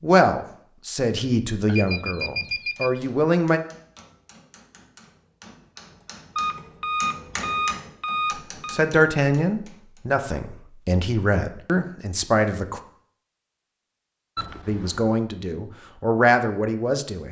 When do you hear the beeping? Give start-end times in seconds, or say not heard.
1.6-3.0, 6.3-8.8, 14.3-15.1.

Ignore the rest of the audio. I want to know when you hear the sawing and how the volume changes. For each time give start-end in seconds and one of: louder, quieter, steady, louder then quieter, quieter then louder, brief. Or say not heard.
not heard.